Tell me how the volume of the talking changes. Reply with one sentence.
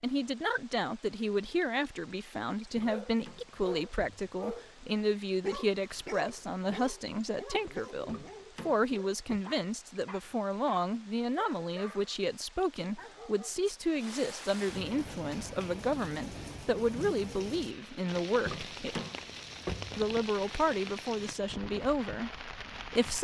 The loudness of the talking stays about the same.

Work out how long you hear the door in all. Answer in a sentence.
You can hear the door for 5 seconds altogether.